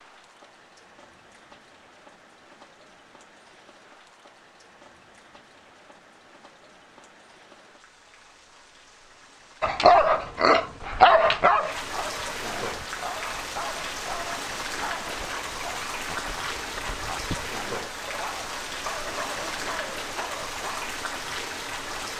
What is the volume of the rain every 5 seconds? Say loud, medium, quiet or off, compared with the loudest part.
quiet, quiet, loud, loud, loud.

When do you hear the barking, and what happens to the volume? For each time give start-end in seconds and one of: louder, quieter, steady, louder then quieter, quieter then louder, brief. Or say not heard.
9.6-20.8 quieter.